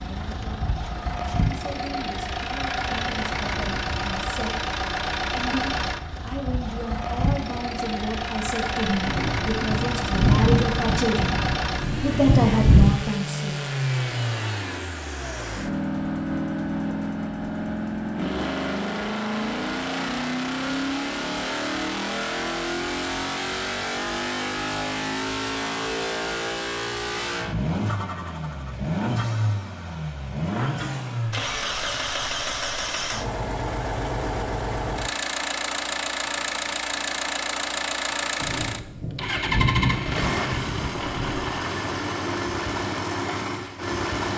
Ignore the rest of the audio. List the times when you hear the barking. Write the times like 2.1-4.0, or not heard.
not heard.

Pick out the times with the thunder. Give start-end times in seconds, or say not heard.
9.1-12.9, 38.4-41.6.